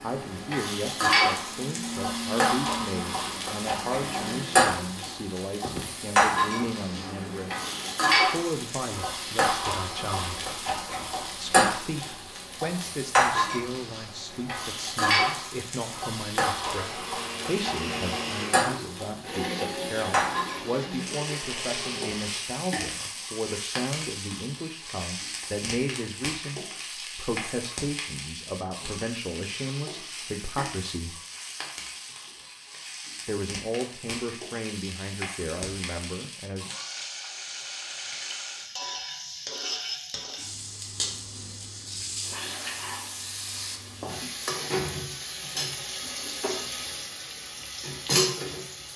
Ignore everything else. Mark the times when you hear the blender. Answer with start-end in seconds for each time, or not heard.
0.0-8.2, 16.8-22.5.